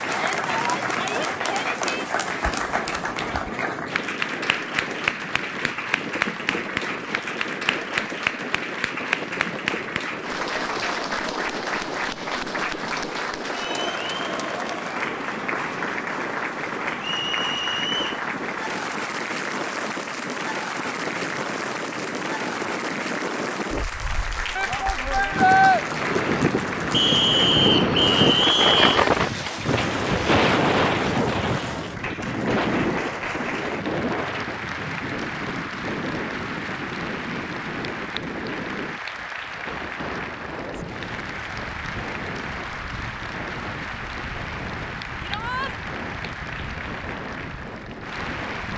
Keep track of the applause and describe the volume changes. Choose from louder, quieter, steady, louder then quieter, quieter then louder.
quieter.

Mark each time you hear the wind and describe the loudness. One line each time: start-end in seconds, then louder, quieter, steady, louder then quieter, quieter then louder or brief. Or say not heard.
0.0-48.7 louder then quieter.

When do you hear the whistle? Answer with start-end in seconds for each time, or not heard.
17.0-18.1, 26.9-29.0.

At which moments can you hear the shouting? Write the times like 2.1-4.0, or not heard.
0.1-2.0, 24.6-25.8, 45.2-45.8.